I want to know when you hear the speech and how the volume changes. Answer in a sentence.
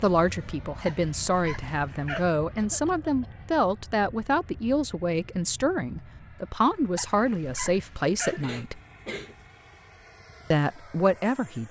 You can hear the speech from 0.0 to 8.8 s, at a steady volume; and briefly from 10.5 to 11.6 s.